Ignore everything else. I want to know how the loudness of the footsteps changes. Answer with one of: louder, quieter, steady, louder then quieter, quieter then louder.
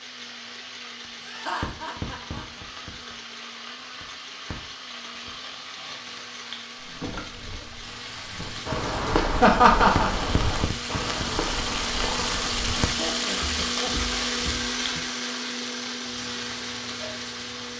quieter.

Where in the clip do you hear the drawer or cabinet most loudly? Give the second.
7 s.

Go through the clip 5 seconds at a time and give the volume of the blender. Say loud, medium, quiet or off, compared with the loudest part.
quiet, quiet, loud, loud.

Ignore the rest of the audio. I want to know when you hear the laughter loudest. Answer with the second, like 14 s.
10 s.